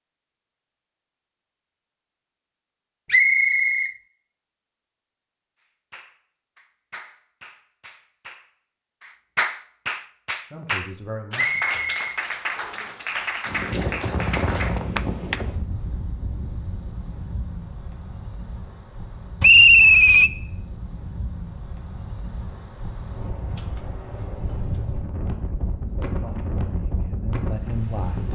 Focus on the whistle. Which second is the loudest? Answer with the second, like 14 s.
20 s.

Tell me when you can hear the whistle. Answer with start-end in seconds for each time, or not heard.
3.1-3.9, 11.3-12.8, 19.4-20.3.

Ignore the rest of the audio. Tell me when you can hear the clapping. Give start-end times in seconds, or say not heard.
5.9-15.4.